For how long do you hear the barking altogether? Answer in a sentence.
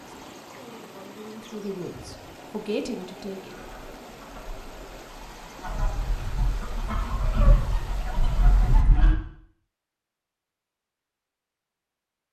You can't hear the barking here.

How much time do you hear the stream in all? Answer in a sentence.
You can hear the stream for 9 seconds altogether.